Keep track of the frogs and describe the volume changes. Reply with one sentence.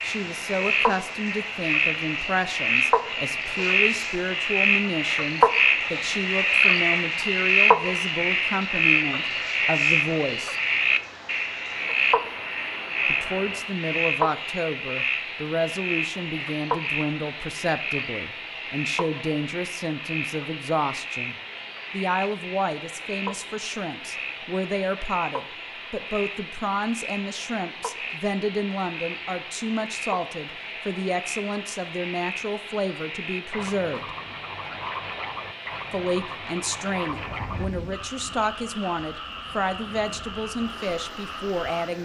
The volume of the frogs goes down.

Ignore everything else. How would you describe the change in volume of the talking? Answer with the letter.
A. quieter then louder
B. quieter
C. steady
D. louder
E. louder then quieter
C.